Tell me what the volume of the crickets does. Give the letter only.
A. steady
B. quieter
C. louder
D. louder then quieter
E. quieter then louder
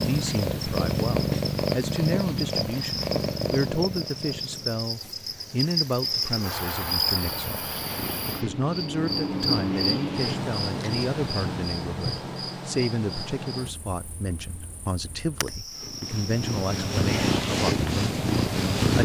D.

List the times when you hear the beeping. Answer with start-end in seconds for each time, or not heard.
not heard.